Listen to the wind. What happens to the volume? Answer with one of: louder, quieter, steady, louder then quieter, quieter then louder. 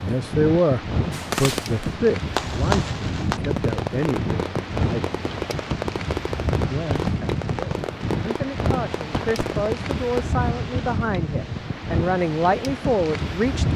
steady.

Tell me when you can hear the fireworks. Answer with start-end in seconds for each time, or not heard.
1.1-10.3.